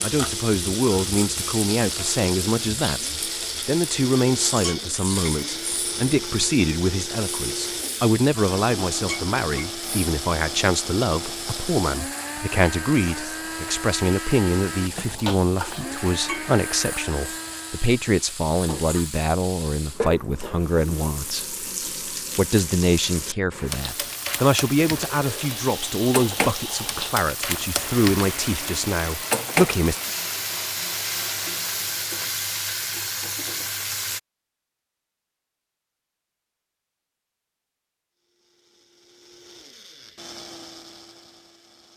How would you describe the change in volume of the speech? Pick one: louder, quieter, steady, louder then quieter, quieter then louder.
steady.